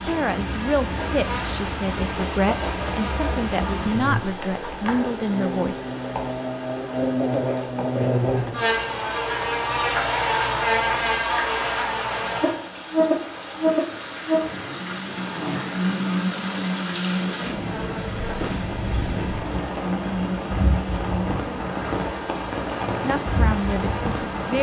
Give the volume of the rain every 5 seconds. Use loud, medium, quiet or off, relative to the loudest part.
loud, medium, medium, loud, loud.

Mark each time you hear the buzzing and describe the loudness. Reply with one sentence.
You can hear the buzzing from 0.0 to 24.5 s, getting louder then quieter.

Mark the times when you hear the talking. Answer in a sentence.
The talking can be heard from 0.0 to 5.8 s and from 22.9 to 24.5 s.